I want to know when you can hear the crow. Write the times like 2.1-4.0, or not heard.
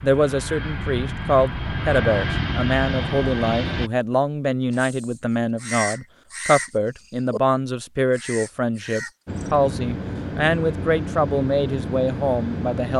4.7-7.4, 8.2-9.6.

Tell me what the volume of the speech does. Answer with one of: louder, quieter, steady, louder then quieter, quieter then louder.
steady.